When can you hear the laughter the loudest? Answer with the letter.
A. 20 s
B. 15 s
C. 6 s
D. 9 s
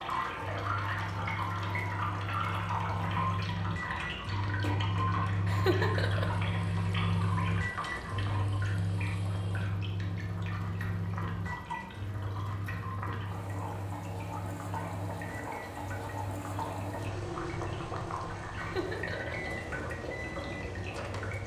C.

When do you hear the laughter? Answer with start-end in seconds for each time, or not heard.
5.5-6.3, 18.6-19.4.